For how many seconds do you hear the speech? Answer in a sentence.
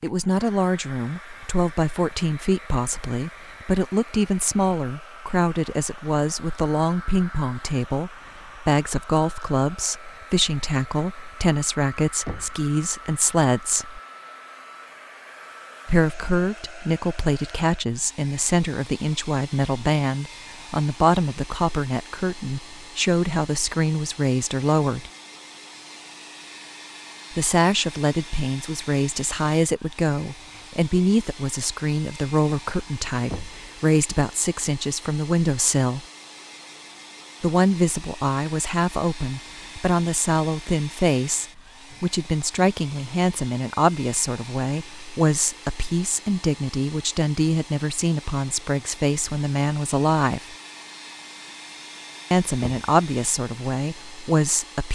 You can hear the speech for 48 seconds altogether.